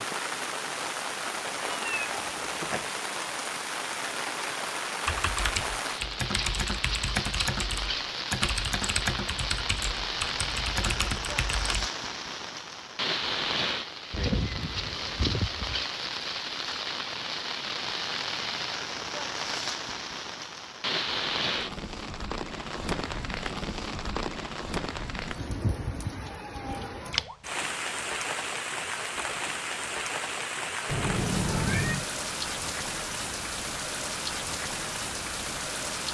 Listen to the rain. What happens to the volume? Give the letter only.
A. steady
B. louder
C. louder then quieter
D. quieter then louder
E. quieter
A.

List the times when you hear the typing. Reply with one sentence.
You can hear the typing from 5.0 to 11.9 s.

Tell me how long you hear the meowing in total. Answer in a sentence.
You can hear the meowing for 4 seconds altogether.